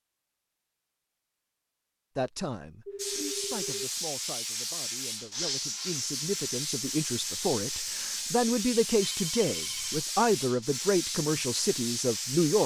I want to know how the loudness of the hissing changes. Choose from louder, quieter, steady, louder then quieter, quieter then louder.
steady.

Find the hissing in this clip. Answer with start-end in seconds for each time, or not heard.
3.0-12.6.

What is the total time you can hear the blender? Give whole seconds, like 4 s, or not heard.
not heard.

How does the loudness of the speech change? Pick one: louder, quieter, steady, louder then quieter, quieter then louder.
louder.